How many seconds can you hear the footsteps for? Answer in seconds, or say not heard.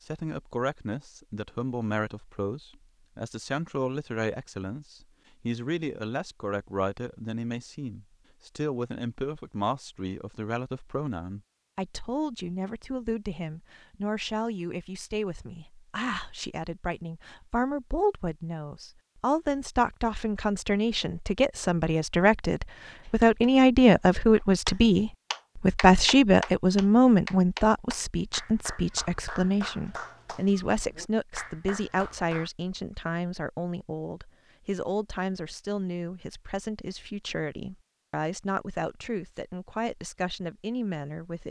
not heard.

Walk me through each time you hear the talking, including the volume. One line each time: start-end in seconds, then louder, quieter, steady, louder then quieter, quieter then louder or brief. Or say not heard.
0.0-41.4 louder then quieter.